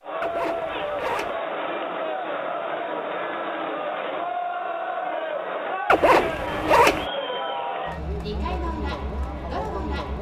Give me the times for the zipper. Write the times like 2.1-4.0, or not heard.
0.2-1.4, 5.8-7.0.